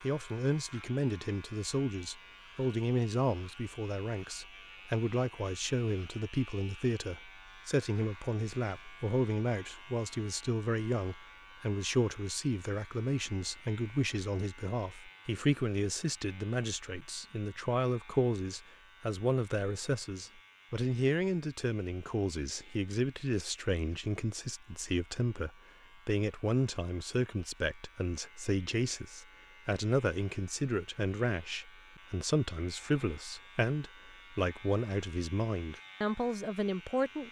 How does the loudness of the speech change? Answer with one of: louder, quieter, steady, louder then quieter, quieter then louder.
steady.